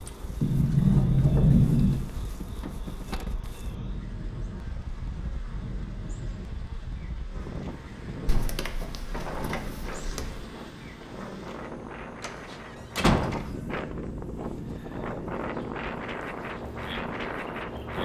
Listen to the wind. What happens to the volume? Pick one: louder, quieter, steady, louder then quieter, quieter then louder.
louder.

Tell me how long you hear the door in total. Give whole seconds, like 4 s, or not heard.
5 s.